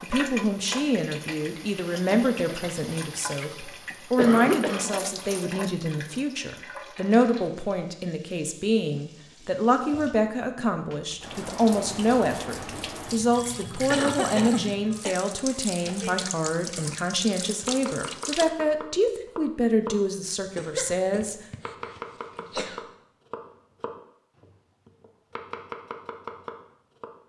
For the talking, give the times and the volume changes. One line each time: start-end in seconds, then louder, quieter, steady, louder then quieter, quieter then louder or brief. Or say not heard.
0.0-21.4 steady.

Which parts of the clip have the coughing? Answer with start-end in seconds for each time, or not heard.
4.2-4.9, 13.9-15.2, 20.6-22.8.